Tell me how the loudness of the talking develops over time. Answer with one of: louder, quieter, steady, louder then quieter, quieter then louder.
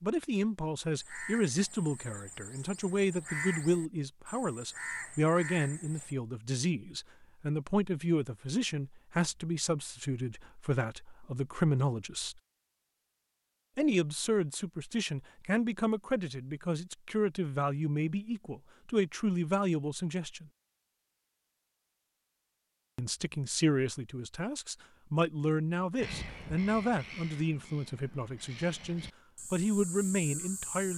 steady.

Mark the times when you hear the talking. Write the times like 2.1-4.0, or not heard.
0.0-12.4, 13.8-20.5, 22.9-30.9.